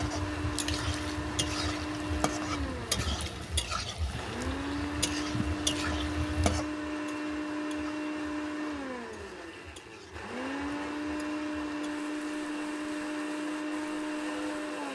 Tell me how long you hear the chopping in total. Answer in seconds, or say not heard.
not heard.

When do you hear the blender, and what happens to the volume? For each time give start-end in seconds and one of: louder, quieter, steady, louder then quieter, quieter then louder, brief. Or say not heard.
0.0-14.8 steady.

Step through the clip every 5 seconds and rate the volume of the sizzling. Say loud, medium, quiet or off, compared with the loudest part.
loud, loud, quiet.